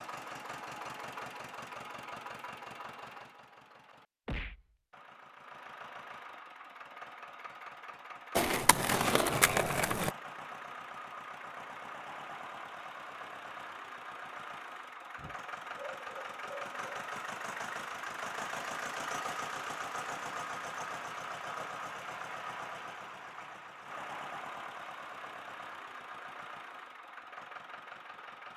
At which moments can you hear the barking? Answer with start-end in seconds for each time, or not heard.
15.2-17.1.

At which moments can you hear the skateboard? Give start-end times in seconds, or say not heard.
8.3-10.1.